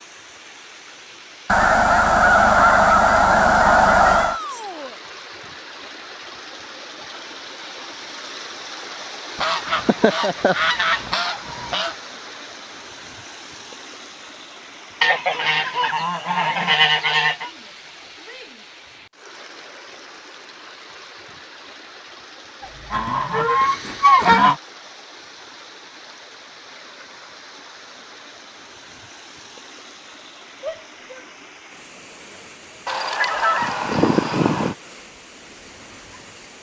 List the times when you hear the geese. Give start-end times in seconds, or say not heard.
1.4-4.4, 9.3-11.9, 15.0-17.5, 22.6-24.6, 32.9-34.8.